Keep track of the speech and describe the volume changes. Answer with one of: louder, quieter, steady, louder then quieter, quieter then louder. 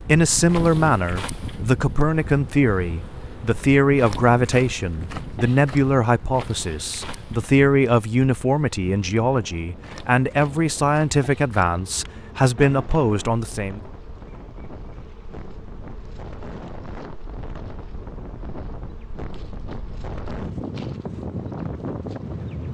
steady.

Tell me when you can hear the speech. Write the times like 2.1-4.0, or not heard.
0.1-13.8.